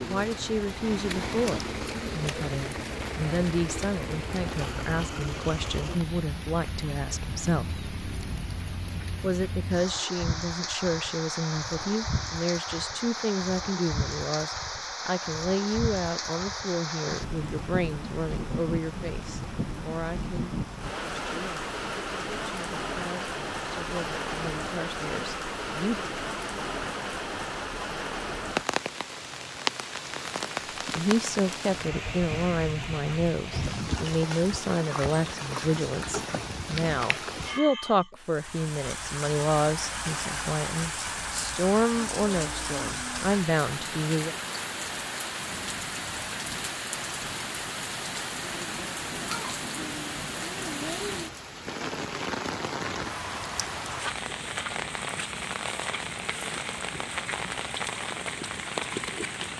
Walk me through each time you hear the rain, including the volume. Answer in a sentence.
The rain can be heard from 0.0 to 59.5 s, at a steady volume.